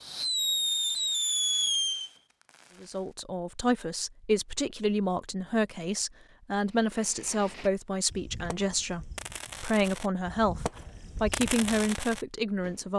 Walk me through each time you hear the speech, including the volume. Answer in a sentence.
You can hear the speech from 2.8 to 12.9 s, at a steady volume.